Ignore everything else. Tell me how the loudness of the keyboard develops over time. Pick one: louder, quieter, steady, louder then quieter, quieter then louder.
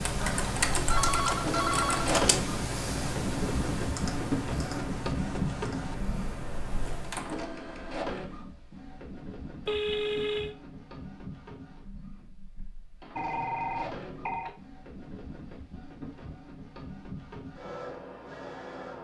quieter.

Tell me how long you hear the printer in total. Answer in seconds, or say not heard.
19 s.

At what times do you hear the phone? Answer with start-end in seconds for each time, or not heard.
0.1-2.0, 9.7-10.6, 13.2-14.6.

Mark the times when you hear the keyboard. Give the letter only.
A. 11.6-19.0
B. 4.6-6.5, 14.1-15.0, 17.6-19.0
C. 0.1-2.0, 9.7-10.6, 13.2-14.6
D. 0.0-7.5
D.